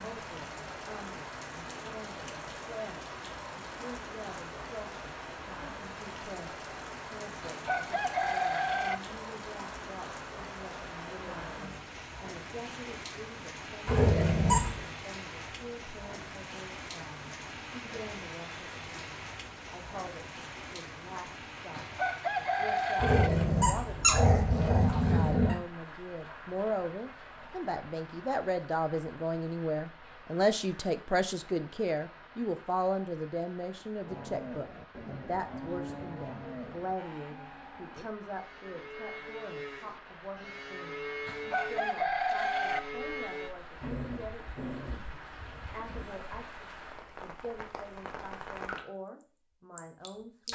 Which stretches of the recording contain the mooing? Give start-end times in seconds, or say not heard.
34.0-43.5.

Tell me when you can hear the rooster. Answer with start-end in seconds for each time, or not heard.
7.4-8.9, 21.7-23.3, 41.2-42.8.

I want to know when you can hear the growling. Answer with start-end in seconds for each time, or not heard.
13.8-14.8, 22.9-25.6, 43.8-46.4.